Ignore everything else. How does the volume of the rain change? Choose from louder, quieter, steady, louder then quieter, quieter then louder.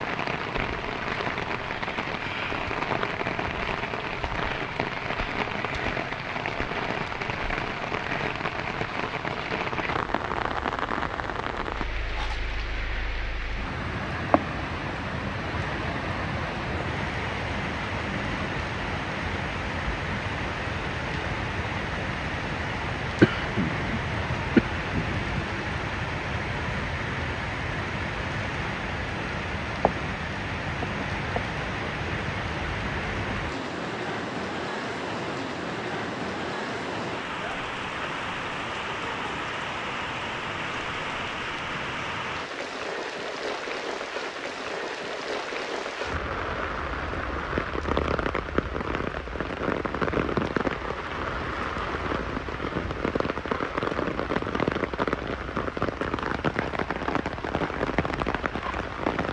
steady.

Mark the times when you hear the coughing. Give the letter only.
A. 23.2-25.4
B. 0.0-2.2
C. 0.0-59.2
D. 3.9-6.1
A.